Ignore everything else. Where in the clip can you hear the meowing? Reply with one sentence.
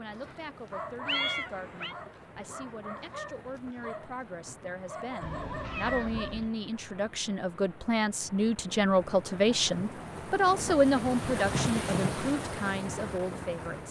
You can hear the meowing from 1.1 to 1.9 s, from 5.2 to 6.5 s and from 11.5 to 12.2 s.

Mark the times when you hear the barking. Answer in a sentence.
The barking can be heard from 0.1 to 6.5 s.